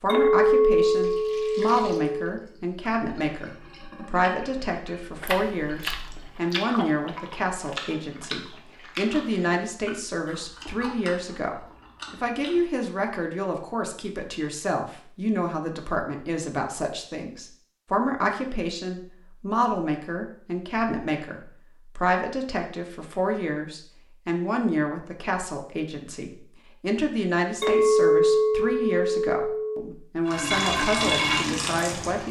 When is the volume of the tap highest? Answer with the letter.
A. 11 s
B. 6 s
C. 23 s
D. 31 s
D.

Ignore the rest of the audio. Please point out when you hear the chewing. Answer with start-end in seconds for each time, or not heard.
5.2-12.7.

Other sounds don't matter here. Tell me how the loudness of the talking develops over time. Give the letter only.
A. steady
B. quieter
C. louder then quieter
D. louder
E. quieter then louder
A.